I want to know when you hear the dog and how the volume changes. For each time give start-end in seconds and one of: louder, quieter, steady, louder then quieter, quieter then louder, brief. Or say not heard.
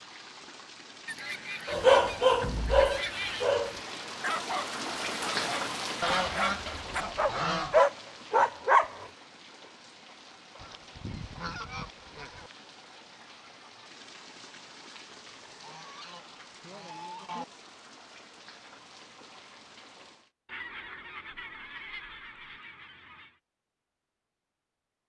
1.6-9.1 quieter then louder.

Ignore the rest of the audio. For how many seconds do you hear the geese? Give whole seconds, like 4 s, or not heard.
11 s.